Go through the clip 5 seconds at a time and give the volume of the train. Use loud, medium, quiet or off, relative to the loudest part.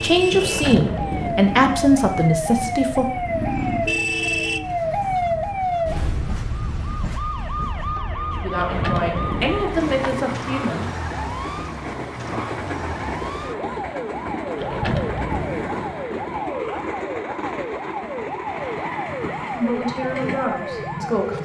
medium, medium, loud, loud, loud.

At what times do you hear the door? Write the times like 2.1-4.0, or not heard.
0.3-1.6, 8.6-9.9, 14.6-16.0.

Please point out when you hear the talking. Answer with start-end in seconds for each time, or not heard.
0.0-3.1, 8.3-10.9, 19.5-21.4.